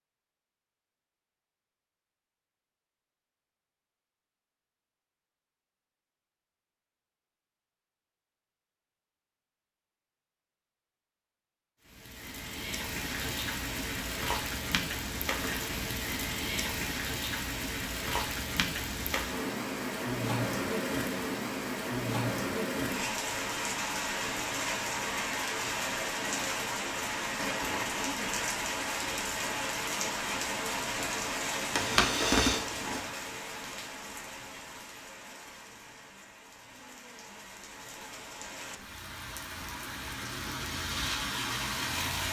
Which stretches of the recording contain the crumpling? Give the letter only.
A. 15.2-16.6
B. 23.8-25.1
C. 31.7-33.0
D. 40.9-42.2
C.